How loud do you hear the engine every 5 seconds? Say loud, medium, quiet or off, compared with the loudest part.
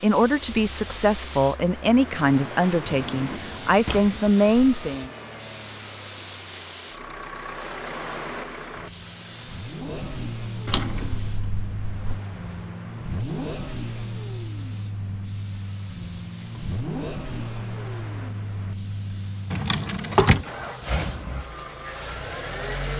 medium, medium, loud, loud, loud.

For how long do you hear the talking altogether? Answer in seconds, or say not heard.
5 s.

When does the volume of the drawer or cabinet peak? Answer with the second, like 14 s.
20 s.